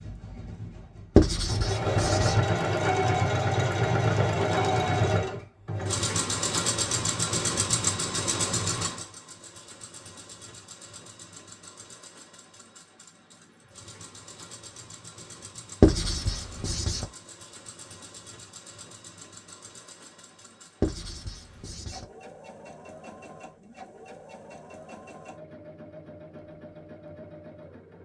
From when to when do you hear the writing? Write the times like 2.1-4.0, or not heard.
1.1-2.4, 15.8-17.1, 20.8-22.1.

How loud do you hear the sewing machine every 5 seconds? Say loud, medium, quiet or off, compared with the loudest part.
loud, loud, quiet, quiet, quiet, quiet.